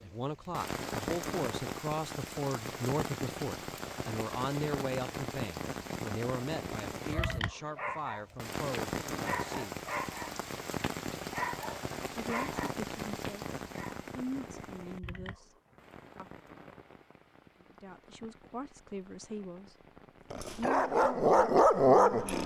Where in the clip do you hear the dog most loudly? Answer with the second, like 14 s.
22 s.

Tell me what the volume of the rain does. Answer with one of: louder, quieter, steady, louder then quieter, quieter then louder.
quieter.